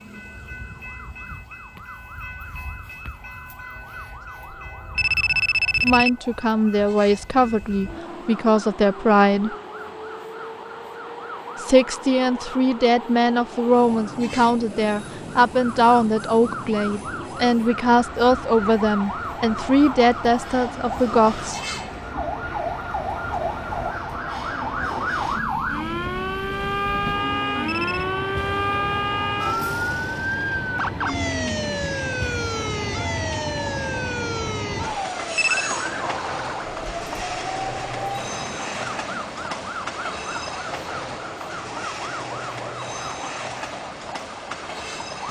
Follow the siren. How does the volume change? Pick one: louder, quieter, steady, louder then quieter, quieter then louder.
louder then quieter.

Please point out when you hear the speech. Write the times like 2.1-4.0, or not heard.
5.8-9.6, 11.6-21.6.